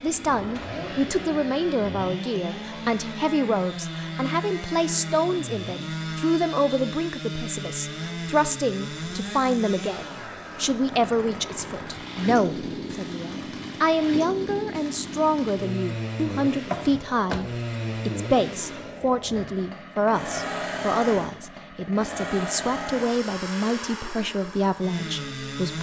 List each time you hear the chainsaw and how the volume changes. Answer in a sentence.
You can hear the chainsaw from 0.0 to 25.7 s, at a steady volume.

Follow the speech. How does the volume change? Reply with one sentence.
The loudness of the speech stays about the same.